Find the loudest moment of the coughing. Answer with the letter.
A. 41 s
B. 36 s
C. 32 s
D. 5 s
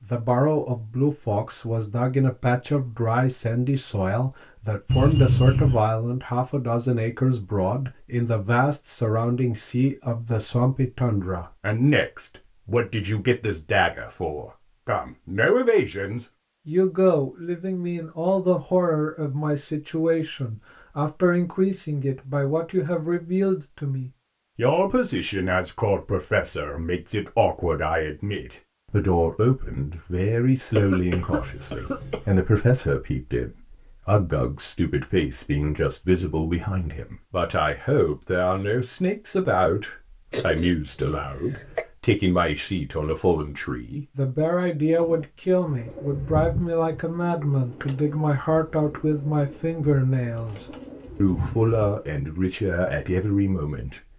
D.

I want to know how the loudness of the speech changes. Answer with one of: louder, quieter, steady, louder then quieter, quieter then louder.
steady.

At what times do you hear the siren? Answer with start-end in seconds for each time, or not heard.
not heard.